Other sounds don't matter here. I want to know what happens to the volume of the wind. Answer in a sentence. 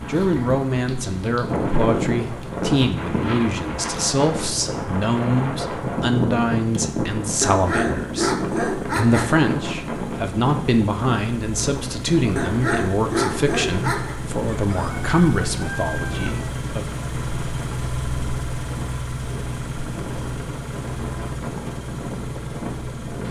The volume of the wind goes down.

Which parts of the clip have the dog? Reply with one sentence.
The dog can be heard from 7.4 to 9.2 s and from 12.3 to 14.2 s.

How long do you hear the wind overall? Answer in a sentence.
You can hear the wind for 23 seconds altogether.